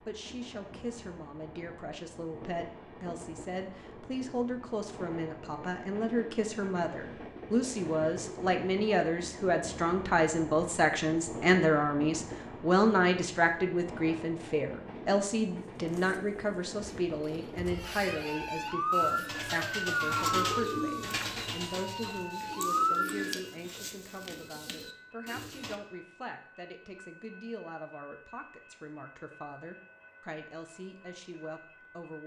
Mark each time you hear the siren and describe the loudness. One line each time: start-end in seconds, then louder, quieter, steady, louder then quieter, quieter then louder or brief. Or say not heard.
18.2-23.4 quieter then louder.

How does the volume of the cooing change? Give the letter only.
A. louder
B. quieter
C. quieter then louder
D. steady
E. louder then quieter
E.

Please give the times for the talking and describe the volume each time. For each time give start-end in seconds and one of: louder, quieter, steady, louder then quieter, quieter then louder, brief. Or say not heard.
0.0-32.2 louder then quieter.